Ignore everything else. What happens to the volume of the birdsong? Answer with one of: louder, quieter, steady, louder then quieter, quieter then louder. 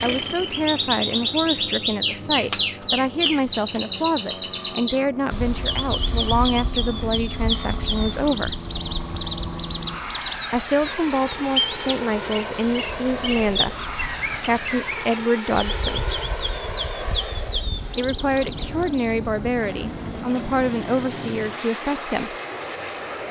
quieter.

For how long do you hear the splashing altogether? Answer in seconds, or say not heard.
not heard.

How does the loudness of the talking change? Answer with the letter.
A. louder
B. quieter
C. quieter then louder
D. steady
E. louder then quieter
D.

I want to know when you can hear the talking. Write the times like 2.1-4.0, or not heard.
0.0-8.6, 10.5-16.1, 17.9-22.4.